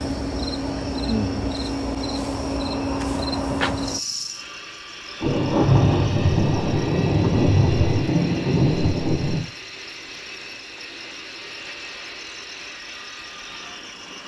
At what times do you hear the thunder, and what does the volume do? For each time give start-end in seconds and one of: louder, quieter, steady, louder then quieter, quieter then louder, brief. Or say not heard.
5.2-9.4 steady.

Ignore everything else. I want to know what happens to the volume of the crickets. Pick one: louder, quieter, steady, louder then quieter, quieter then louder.
quieter.